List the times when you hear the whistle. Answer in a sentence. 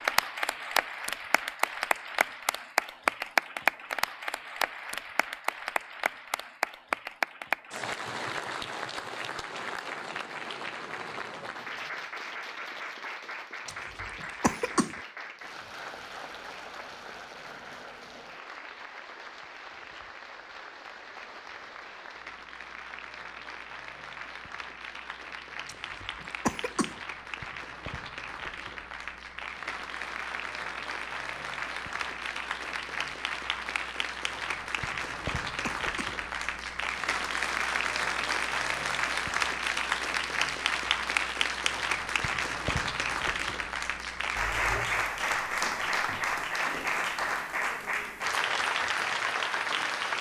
The whistle can't be heard in this clip.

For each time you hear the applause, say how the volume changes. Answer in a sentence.
The applause can be heard from 0.0 to 50.1 s, getting quieter then louder.